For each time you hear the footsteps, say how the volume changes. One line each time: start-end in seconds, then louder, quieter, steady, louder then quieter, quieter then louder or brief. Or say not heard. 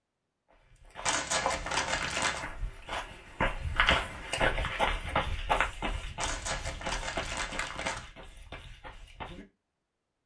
0.5-9.4 louder then quieter.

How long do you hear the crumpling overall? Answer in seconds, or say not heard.
3 s.